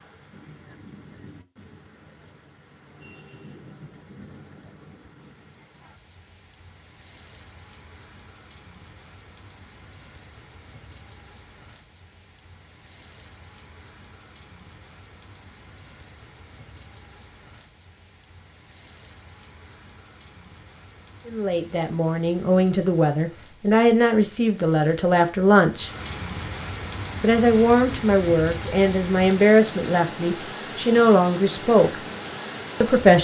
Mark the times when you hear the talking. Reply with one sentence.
You can hear the talking from 21.2 to 25.9 s, from 27.2 to 32.0 s and from 32.8 to 33.2 s.